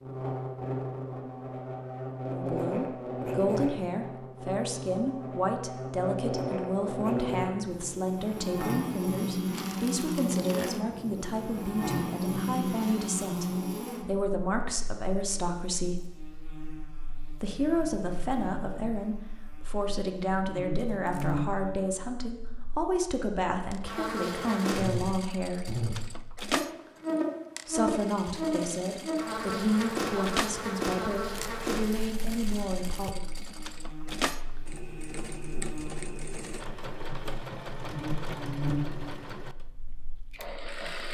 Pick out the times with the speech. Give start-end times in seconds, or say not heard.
2.2-16.0, 17.4-25.6, 27.6-33.2.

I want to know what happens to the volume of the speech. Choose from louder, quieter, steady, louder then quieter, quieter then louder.
steady.